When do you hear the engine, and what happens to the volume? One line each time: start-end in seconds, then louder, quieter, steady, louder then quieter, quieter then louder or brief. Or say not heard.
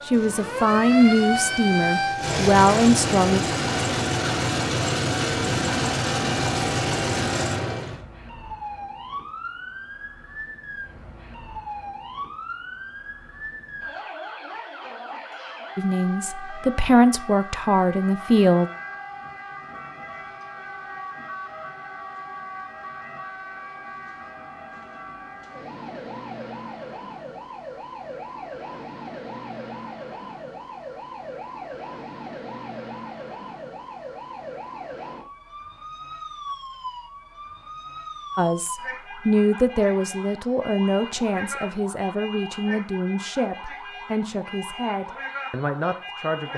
0.0-8.1 louder.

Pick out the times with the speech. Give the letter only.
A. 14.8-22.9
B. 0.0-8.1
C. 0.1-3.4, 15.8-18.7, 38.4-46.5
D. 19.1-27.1
C.